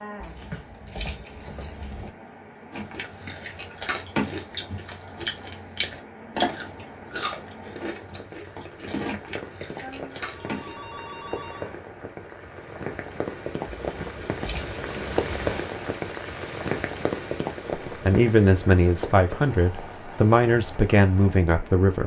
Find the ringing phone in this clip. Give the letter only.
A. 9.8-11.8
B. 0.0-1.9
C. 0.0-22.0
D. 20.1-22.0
A.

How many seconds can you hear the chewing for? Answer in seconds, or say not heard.
8 s.